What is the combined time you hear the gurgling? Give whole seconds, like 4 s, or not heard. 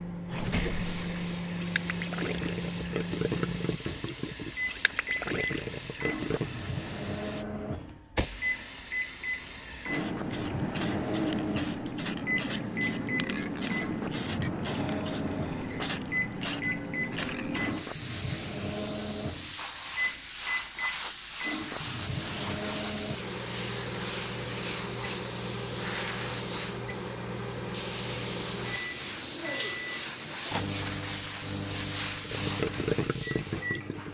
8 s.